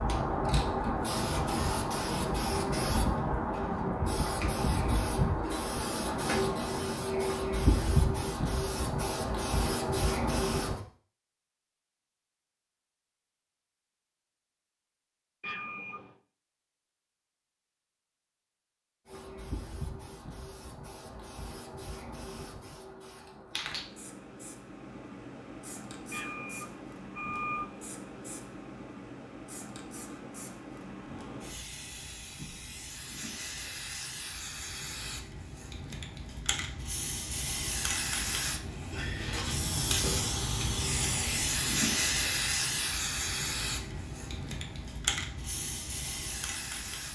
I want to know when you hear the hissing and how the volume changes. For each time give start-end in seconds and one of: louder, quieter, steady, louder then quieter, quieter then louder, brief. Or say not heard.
0.0-10.8 steady
19.1-47.0 louder.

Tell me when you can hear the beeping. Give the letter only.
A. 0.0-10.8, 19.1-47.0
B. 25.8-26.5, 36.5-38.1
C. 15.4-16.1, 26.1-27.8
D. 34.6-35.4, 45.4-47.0
C.